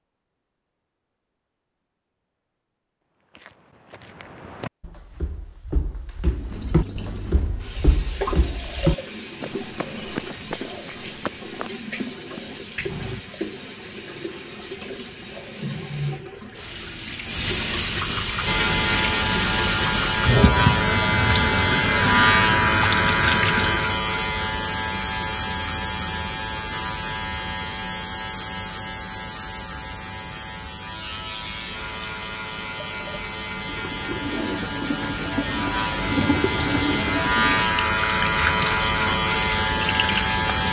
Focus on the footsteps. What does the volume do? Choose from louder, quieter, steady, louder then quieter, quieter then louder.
louder then quieter.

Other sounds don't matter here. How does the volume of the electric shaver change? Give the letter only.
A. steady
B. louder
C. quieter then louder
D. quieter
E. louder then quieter
C.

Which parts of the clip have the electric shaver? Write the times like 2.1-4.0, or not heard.
18.4-40.6.